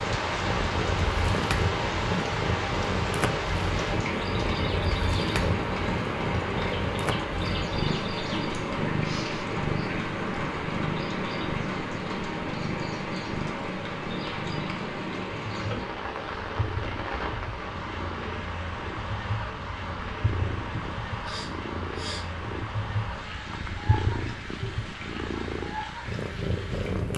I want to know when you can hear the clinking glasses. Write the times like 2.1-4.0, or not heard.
not heard.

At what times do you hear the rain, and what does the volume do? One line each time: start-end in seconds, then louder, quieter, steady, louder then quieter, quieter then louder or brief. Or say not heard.
0.0-27.1 quieter.